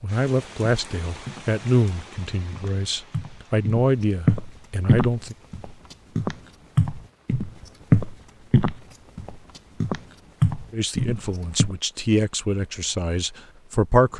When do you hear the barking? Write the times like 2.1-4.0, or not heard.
not heard.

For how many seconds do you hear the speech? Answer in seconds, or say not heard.
9 s.